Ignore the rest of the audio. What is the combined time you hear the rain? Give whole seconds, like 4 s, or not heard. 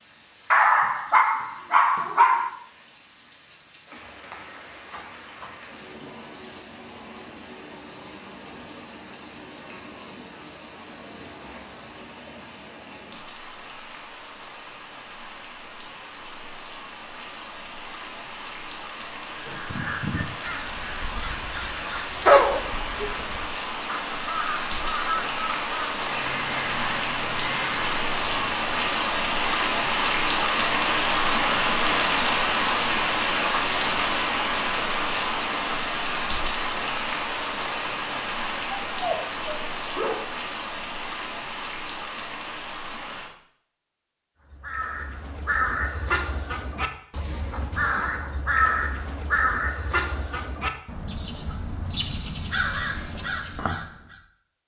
43 s.